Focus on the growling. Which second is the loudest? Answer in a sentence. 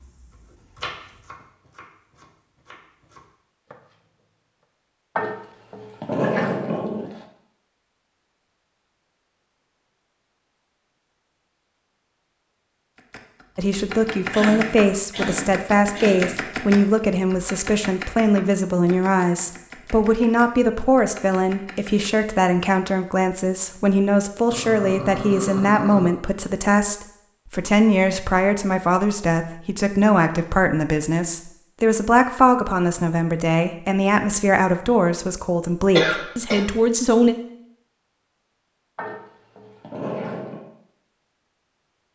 The loudest moment of the growling is at 6 seconds.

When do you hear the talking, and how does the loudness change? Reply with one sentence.
You can hear the talking from 13.6 to 37.4 s, at a steady volume.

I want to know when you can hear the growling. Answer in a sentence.
You can hear the growling from 5.2 to 7.2 s, from 24.5 to 26.1 s and from 39.0 to 40.6 s.